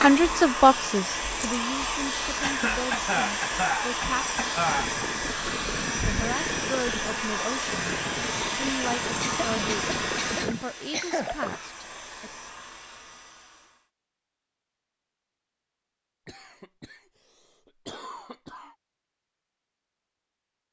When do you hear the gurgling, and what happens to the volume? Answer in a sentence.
The gurgling can be heard from 4.5 to 11.6 s, at a steady volume.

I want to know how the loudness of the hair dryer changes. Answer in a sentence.
The volume of the hair dryer goes down.